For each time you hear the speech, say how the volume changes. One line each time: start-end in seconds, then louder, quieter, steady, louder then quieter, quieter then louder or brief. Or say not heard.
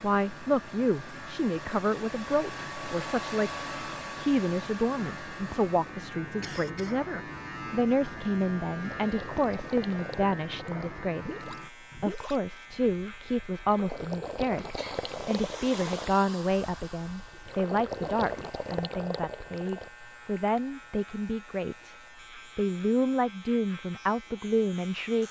0.0-21.9 steady
22.6-25.2 brief.